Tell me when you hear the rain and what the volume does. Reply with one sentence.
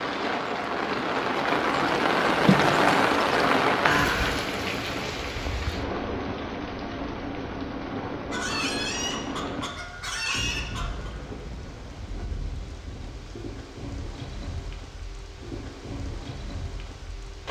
The rain can be heard from 0.0 to 17.4 s, getting quieter.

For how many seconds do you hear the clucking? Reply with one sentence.
You can hear the clucking for 3 seconds altogether.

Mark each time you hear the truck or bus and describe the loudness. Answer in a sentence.
You can't hear the truck or bus here.